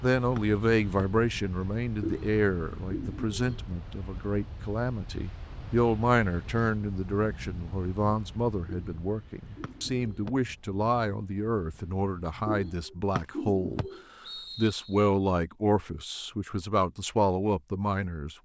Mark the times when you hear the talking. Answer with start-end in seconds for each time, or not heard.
0.0-18.4.